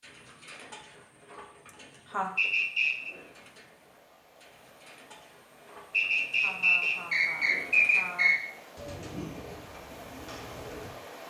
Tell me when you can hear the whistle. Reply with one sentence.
The whistle can be heard from 2.4 to 3.1 s and from 5.9 to 8.4 s.